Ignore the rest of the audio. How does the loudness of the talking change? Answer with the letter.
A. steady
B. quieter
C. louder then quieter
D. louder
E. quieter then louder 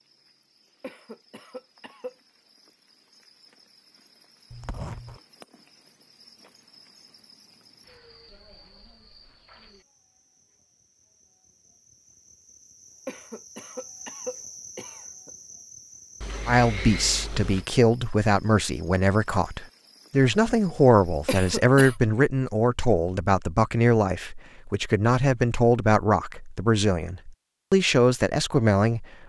A.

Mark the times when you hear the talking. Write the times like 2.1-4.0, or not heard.
16.4-29.1.